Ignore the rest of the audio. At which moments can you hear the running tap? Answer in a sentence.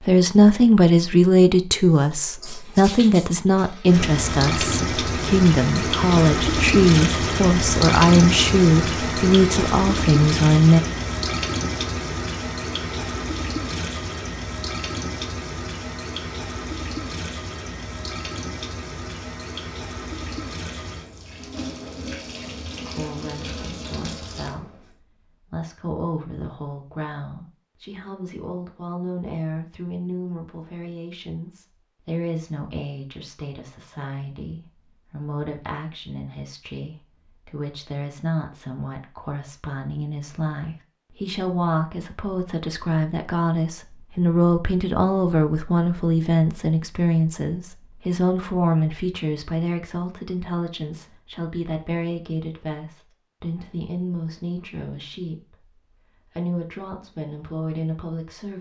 The running tap can be heard from 1.9 to 24.9 s.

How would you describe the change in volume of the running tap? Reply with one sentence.
The volume of the running tap goes down.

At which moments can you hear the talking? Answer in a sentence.
The talking can be heard from 0.0 to 10.8 s and from 22.8 to 58.5 s.